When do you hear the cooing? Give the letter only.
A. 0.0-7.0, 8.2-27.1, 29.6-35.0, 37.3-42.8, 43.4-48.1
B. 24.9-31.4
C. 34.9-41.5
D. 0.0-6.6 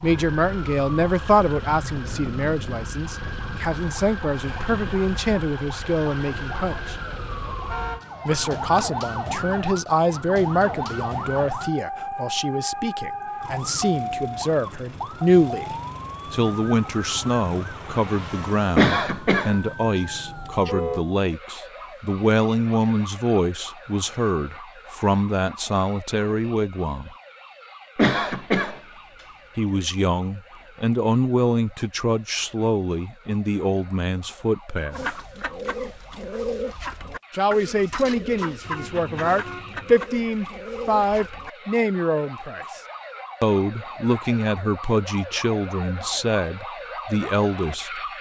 C.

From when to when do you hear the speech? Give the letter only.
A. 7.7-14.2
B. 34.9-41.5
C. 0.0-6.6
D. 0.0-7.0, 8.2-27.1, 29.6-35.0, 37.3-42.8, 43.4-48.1
D.